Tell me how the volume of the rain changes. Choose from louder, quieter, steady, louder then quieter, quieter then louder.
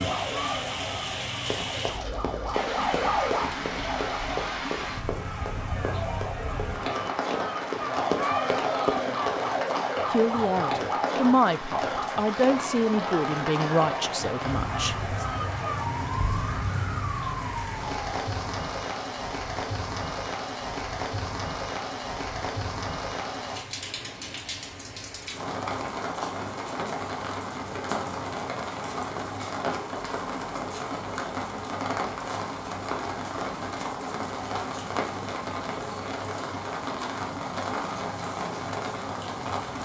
steady.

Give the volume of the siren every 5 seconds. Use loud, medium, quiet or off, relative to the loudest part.
loud, loud, loud, loud, off, off, off, off.